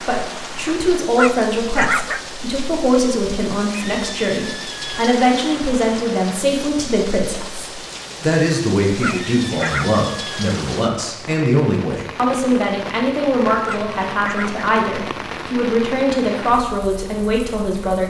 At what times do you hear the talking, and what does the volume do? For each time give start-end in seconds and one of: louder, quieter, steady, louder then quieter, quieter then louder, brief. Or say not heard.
0.0-18.0 steady.